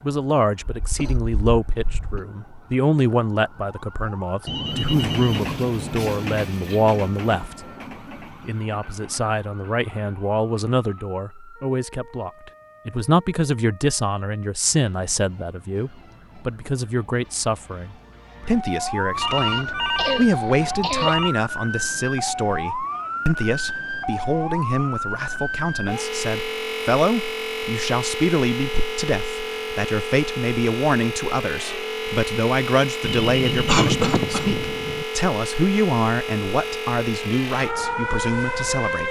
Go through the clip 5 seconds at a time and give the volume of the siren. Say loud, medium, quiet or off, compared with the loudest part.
quiet, quiet, quiet, medium, loud, loud, loud, loud.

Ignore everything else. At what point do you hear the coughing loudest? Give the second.
34 s.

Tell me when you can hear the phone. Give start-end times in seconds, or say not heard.
4.5-6.2, 19.1-21.3, 33.0-35.0.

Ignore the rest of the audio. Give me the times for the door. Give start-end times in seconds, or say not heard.
not heard.